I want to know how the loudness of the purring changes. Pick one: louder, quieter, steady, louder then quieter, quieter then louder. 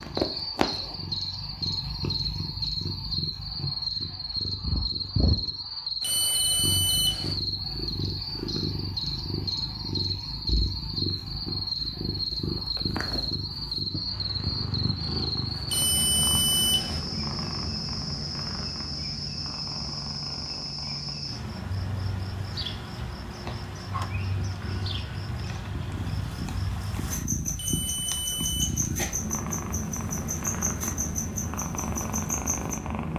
quieter then louder.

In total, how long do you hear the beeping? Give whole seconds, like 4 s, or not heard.
4 s.